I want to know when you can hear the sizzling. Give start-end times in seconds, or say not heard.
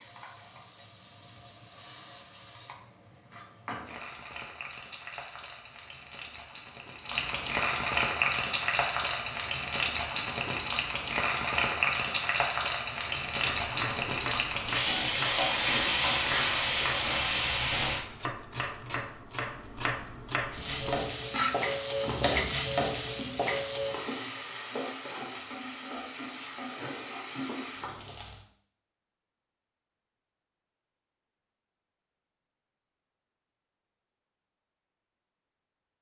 0.0-18.1, 20.5-28.4.